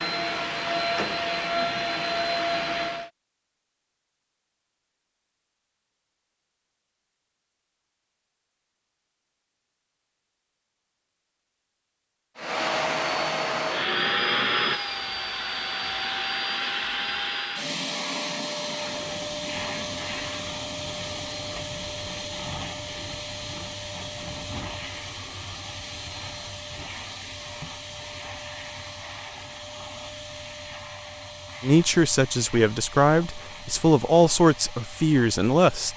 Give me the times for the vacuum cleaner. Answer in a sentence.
The vacuum cleaner can be heard from 0.0 to 3.1 s and from 12.3 to 35.9 s.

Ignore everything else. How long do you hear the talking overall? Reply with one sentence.
You can hear the talking for 4 seconds altogether.